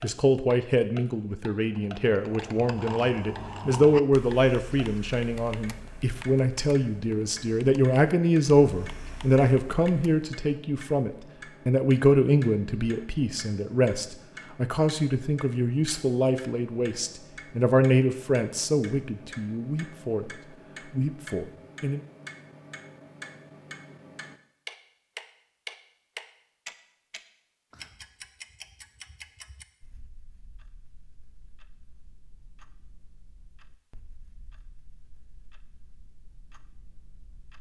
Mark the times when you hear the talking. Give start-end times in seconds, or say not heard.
0.0-22.0.